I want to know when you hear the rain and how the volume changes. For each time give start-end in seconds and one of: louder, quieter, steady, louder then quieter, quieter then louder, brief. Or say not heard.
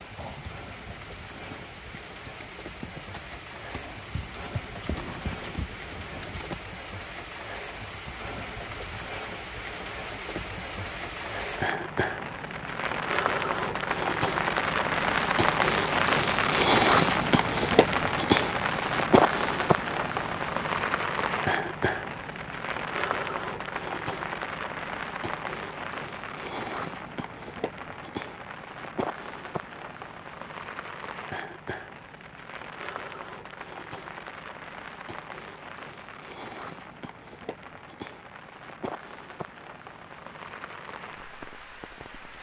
0.0-42.3 louder then quieter.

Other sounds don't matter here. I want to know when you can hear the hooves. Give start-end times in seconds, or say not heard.
0.1-6.5.